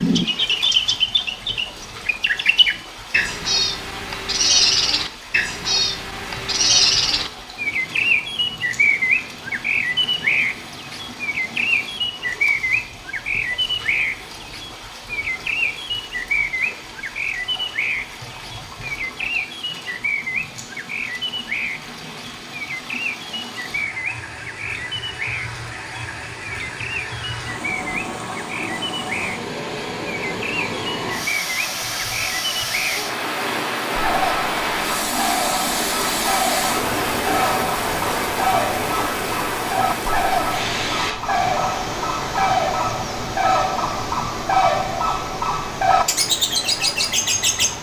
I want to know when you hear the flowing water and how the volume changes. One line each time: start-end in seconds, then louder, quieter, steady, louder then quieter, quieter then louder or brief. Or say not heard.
0.0-47.7 louder.